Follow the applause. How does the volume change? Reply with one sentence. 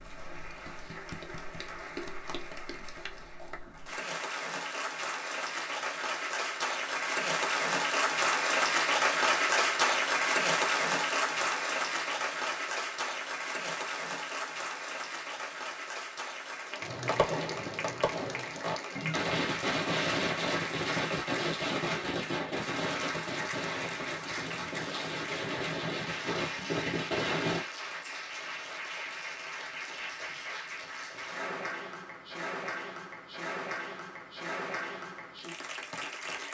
The loudness of the applause goes up, then down.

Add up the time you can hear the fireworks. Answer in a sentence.
You can hear the fireworks for 11 seconds altogether.